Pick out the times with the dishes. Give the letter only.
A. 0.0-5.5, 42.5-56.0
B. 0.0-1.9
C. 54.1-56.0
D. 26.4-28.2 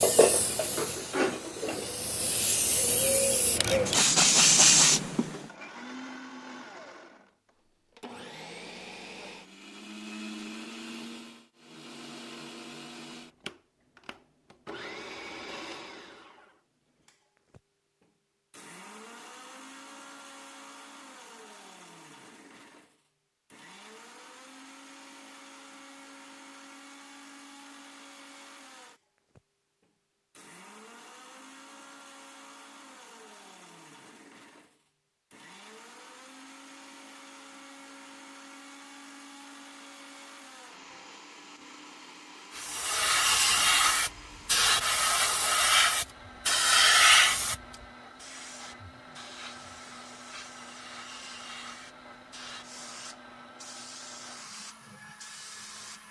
B.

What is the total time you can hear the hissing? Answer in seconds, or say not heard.
19 s.